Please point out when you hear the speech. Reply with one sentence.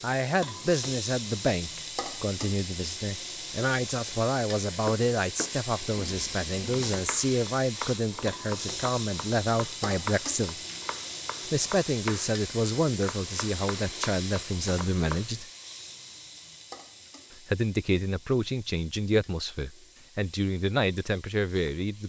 You can hear the speech from 0.0 to 10.6 s, from 11.4 to 15.4 s and from 17.4 to 22.0 s.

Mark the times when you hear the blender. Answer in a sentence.
The blender can't be heard in this clip.